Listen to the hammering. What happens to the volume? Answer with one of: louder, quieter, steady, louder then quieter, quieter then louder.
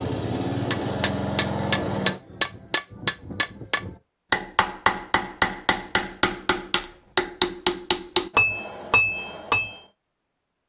steady.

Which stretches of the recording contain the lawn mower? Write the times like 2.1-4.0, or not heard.
0.0-2.2.